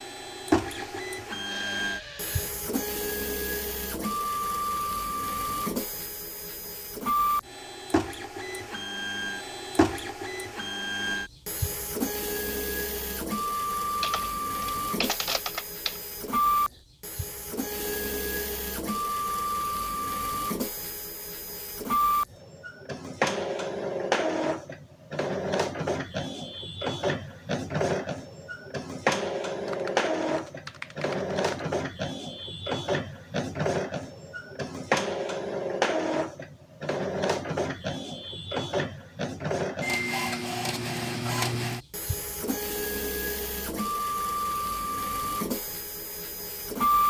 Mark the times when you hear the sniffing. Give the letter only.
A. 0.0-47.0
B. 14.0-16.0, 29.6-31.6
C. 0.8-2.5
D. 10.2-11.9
C.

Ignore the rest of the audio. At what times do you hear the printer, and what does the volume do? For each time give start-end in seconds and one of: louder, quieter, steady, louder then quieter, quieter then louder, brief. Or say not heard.
0.0-47.0 steady.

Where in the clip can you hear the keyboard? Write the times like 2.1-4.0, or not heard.
14.0-16.0, 29.6-31.6.